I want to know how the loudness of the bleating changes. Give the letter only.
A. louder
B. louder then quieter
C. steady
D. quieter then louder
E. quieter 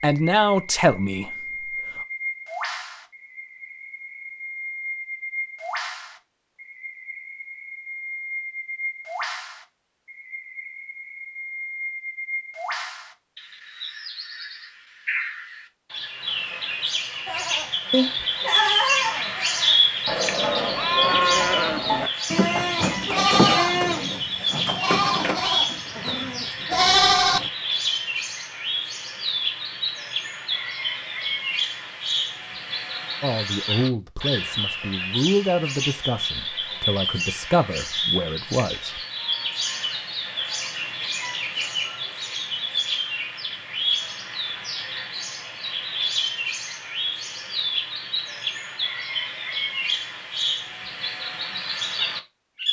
C.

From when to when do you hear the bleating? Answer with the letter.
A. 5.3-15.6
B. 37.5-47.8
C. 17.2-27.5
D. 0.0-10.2
C.